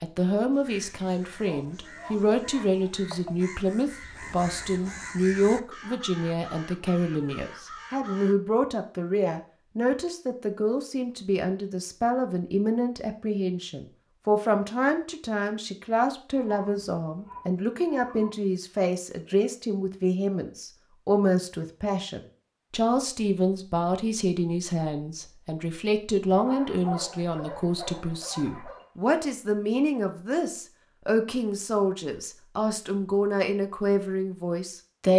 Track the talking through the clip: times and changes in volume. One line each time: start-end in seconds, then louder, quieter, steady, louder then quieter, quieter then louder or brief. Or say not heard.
0.0-35.1 steady.